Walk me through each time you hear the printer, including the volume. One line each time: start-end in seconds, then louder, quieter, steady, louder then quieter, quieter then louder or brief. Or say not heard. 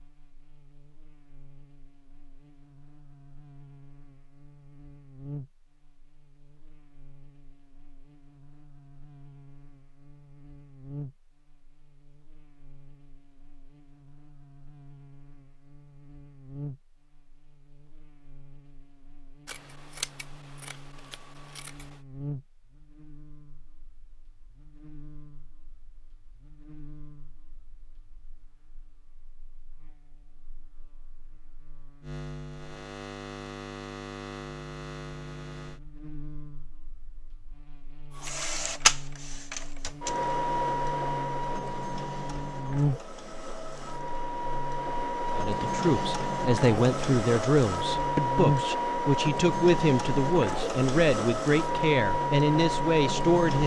38.1-53.6 quieter then louder.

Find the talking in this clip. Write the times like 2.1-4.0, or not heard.
45.4-53.6.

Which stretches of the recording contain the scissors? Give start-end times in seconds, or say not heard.
19.4-22.0.